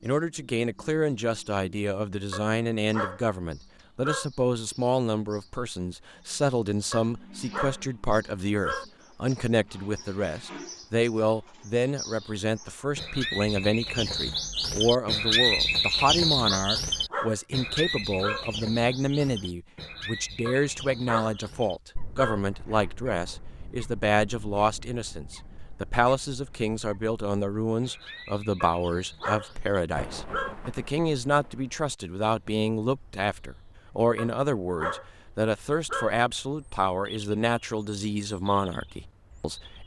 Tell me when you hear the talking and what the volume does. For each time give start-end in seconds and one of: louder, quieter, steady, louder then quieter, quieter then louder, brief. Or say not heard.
0.0-39.8 steady.